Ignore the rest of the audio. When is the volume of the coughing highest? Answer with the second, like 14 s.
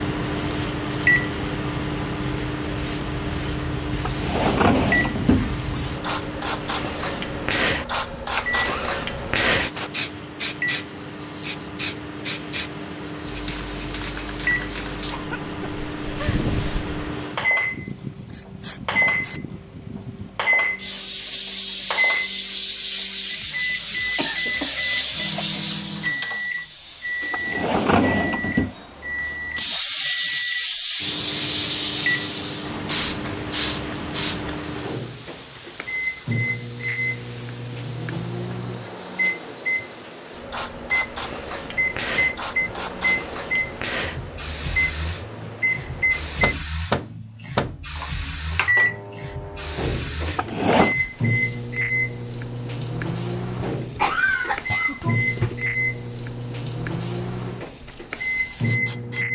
54 s.